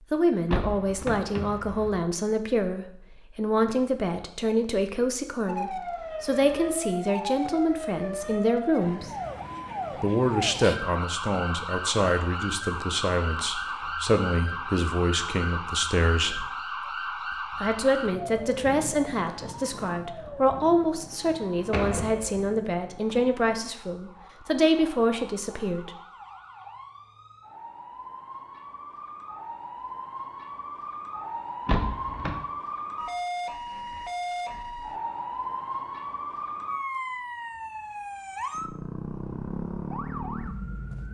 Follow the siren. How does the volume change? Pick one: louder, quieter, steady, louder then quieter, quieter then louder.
quieter then louder.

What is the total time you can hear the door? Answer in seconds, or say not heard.
3 s.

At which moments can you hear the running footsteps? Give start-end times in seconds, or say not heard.
not heard.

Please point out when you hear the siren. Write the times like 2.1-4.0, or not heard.
5.5-41.0.